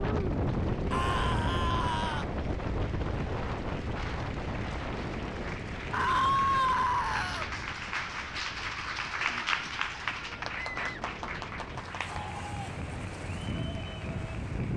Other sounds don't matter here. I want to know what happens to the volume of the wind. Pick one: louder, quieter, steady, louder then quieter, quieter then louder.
quieter then louder.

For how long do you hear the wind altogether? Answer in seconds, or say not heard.
15 s.